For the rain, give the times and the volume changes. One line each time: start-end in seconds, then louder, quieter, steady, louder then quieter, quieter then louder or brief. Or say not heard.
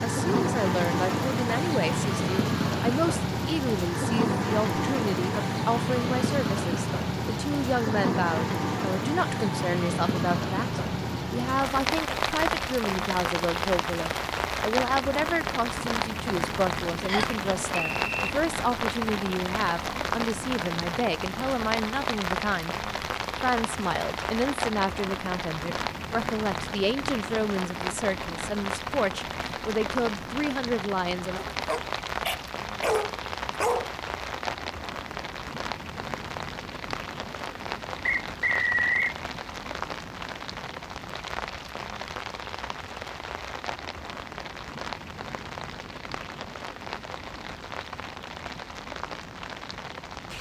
0.0-50.3 quieter.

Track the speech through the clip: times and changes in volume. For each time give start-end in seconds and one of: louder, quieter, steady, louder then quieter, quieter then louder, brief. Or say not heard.
0.0-31.4 steady.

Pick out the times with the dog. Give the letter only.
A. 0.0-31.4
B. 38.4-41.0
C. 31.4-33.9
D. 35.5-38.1
C.